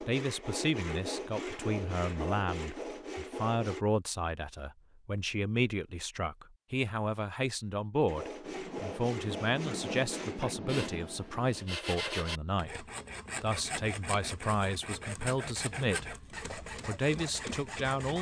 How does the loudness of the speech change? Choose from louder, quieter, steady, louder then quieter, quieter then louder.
steady.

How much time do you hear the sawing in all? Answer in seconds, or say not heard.
14 s.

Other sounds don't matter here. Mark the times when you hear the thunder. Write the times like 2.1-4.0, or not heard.
8.4-11.8.